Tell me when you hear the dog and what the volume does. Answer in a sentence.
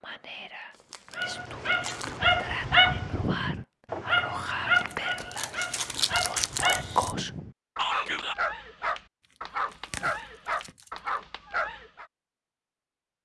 You can hear the dog from 1.1 to 12.1 s, getting quieter.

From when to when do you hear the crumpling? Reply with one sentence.
The crumpling can be heard from 0.7 to 2.3 s, from 4.8 to 7.2 s and from 9.7 to 11.0 s.